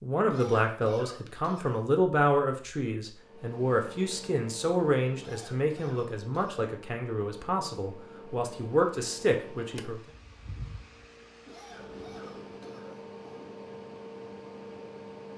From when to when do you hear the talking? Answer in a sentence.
You can hear the talking from 0.0 to 10.0 s.